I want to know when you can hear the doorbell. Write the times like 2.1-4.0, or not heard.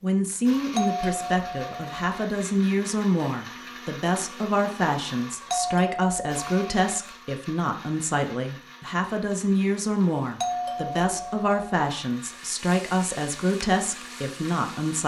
0.8-2.2, 5.5-7.0, 10.4-11.8.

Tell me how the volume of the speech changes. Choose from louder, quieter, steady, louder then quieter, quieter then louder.
steady.